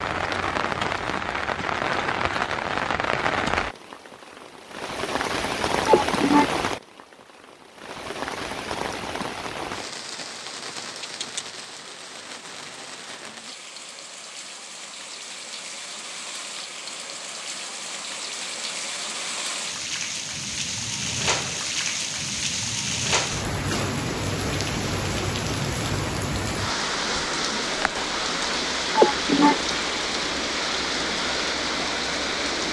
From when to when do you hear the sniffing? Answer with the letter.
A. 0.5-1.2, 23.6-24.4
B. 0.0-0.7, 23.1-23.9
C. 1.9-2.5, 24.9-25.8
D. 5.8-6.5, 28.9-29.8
D.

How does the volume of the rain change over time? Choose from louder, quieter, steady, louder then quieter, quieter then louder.
quieter then louder.